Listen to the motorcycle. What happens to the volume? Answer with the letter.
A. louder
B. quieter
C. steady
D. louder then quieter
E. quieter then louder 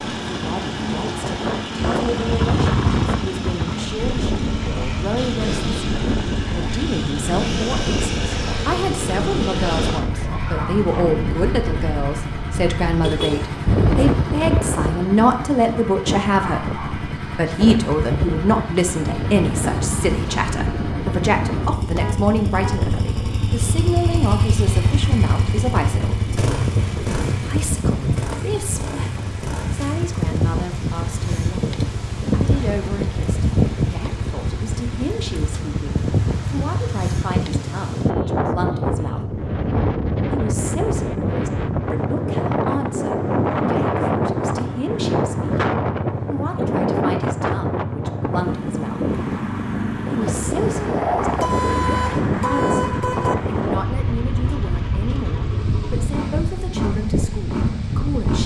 C.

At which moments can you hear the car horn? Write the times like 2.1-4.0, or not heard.
12.9-13.4, 21.9-22.9, 51.4-53.4.